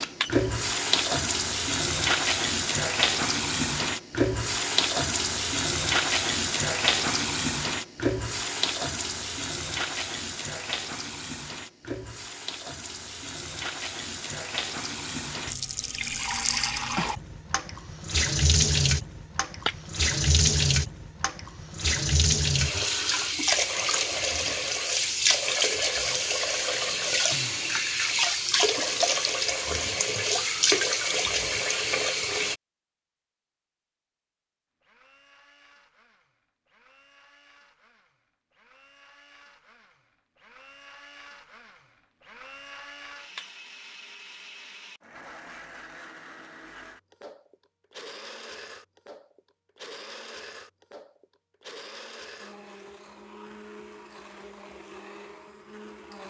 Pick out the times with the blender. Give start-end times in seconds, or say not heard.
34.8-56.2.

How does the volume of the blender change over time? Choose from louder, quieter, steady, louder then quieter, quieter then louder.
louder.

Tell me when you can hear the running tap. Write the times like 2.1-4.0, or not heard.
0.0-32.5.